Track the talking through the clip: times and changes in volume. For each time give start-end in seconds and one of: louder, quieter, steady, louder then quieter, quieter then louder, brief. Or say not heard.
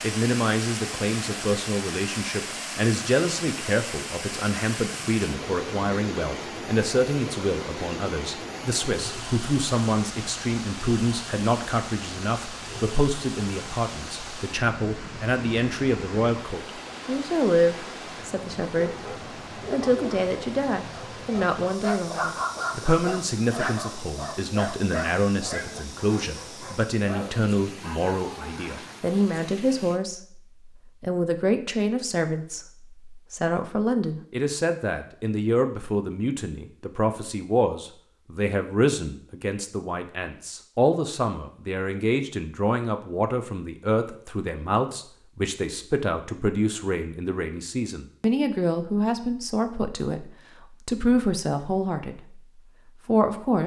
0.0-18.9 steady
19.7-52.4 steady
53.0-53.6 brief.